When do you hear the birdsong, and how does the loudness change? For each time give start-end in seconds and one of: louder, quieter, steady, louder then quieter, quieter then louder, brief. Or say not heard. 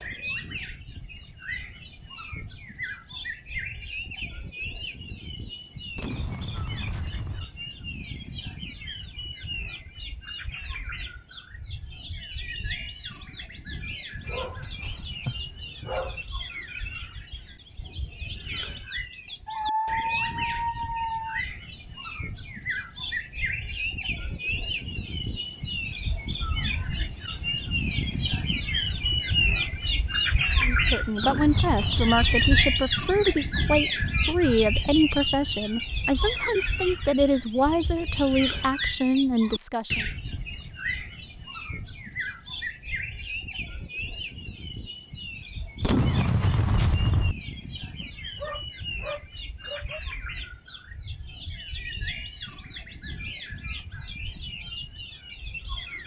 0.0-56.0 louder then quieter.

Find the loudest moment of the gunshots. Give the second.
46 s.